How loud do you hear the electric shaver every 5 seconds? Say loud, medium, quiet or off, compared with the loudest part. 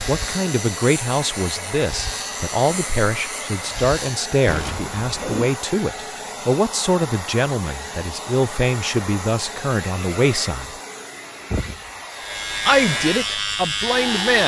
medium, off, loud.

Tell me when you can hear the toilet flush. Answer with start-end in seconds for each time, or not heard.
4.5-5.5.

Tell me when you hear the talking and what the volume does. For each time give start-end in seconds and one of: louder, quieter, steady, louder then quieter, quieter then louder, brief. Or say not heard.
0.1-10.8 steady
12.7-14.4 brief.